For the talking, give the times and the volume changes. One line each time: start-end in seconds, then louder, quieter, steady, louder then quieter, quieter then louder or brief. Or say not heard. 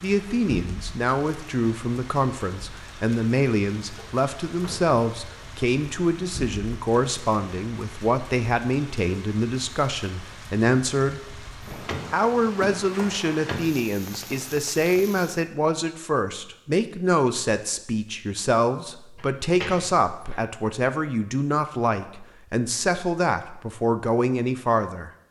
0.0-11.4 steady
12.1-25.2 steady.